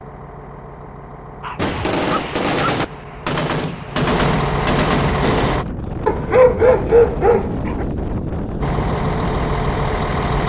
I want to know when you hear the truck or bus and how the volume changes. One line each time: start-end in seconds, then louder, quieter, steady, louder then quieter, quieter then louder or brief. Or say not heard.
0.0-5.7 louder
8.6-10.4 brief.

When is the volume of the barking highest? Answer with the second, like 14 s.
7 s.